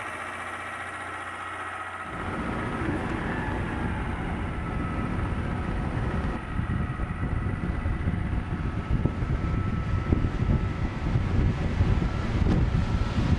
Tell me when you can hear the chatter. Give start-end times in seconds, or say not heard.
not heard.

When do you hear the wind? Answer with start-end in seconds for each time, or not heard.
2.0-13.3.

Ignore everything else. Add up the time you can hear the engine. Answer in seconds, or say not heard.
13 s.